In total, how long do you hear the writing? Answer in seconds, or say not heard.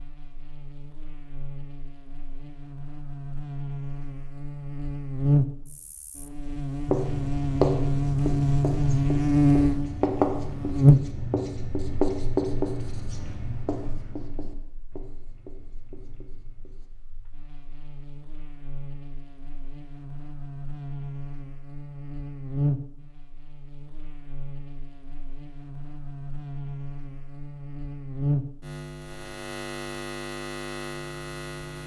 10 s.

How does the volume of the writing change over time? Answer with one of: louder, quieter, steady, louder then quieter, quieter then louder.
quieter.